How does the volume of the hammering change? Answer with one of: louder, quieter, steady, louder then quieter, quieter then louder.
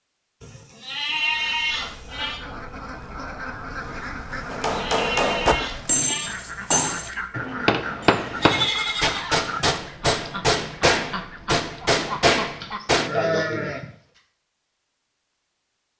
steady.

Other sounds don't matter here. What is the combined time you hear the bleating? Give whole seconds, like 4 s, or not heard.
7 s.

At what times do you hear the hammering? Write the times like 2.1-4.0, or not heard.
4.5-13.1.